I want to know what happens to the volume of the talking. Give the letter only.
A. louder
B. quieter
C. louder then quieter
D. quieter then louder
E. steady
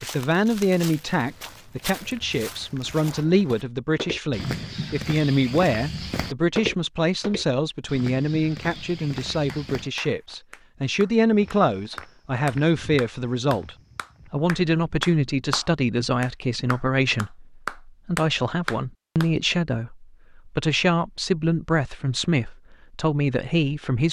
E.